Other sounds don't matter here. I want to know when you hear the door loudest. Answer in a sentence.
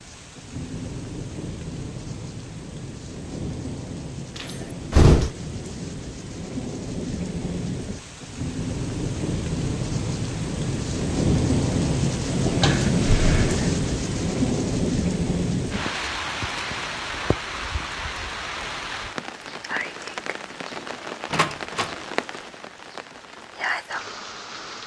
The loudest moment of the door is at 5 seconds.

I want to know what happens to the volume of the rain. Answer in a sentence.
The volume of the rain goes up, then down.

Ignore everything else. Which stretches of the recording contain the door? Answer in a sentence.
You can hear the door from 4.3 to 5.3 s, from 12.6 to 13.7 s and from 21.3 to 21.9 s.